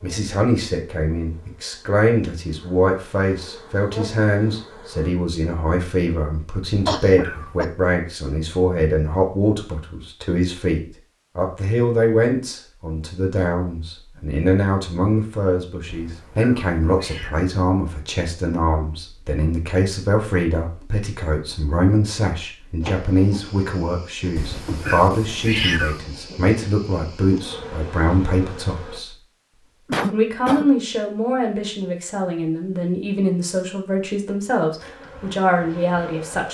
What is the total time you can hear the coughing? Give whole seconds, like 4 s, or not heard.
2 s.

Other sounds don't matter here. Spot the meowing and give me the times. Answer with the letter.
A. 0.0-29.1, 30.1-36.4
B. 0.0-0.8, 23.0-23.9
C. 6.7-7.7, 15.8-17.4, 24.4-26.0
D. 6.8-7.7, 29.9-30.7
C.